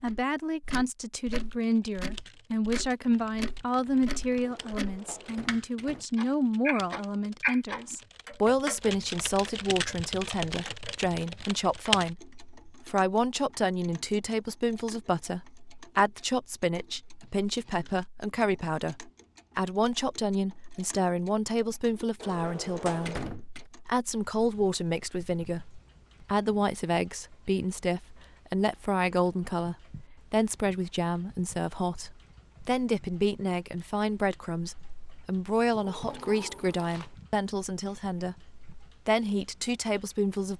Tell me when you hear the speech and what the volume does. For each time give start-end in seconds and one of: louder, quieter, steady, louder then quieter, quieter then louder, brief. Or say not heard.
0.0-40.5 steady.